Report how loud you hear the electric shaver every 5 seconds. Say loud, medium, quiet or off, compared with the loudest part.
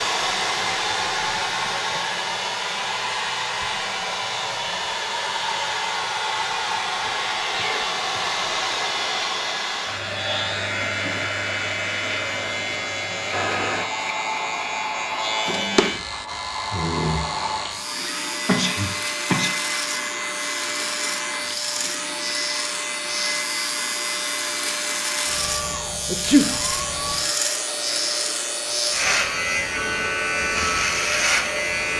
medium, medium, medium, medium, medium, loud, loud.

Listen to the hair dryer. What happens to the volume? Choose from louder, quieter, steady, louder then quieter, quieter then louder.
quieter.